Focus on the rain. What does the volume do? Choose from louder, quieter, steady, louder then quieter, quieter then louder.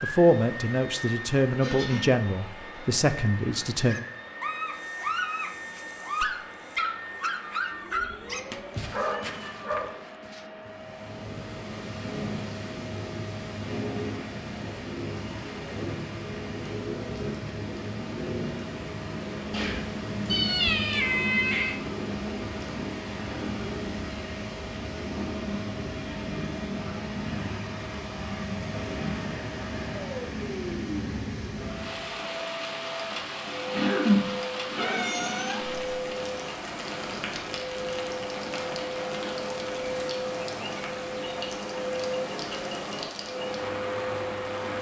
steady.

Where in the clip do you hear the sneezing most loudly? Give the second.
34 s.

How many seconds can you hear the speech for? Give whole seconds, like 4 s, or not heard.
4 s.